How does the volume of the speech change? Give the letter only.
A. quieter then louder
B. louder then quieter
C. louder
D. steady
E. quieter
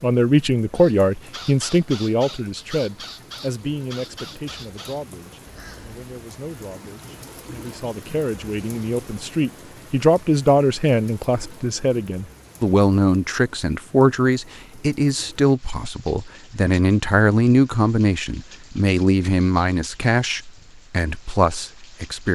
A.